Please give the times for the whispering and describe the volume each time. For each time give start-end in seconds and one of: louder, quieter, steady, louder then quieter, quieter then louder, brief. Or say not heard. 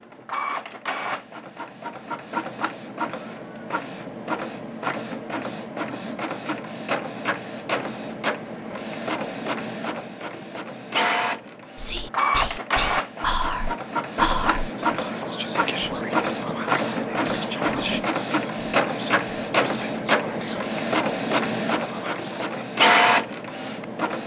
11.8-22.6 quieter.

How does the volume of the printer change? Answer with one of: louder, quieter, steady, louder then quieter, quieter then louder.
louder.